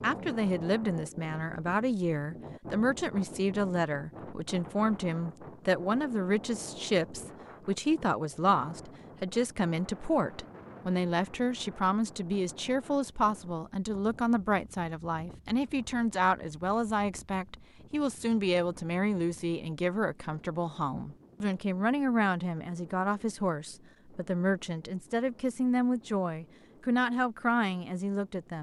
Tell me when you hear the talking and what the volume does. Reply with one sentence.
You can hear the talking from 0.0 to 28.5 s, at a steady volume.